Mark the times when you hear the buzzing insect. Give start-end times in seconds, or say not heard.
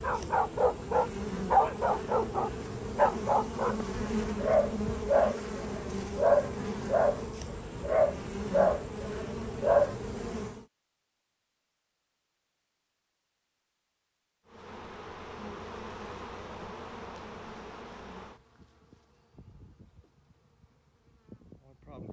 0.0-10.7, 14.4-22.0.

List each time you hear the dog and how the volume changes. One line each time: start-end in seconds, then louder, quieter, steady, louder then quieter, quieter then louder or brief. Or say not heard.
0.0-9.9 steady.